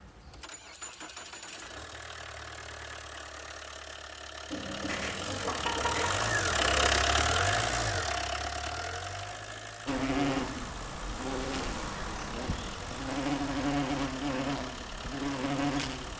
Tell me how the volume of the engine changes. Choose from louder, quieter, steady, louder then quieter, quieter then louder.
louder then quieter.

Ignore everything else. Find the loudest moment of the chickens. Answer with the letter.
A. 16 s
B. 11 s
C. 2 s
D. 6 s
D.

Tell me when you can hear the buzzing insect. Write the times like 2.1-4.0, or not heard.
9.8-16.1.